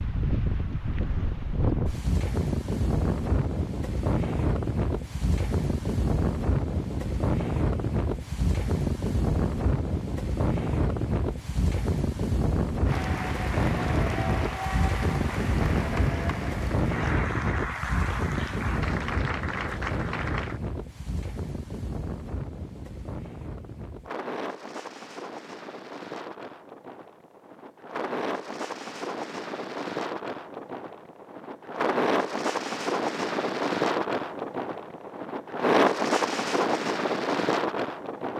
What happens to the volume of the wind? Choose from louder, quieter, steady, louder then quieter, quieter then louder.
quieter then louder.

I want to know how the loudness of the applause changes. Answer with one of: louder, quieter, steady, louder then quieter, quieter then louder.
steady.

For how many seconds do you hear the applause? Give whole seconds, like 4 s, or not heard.
8 s.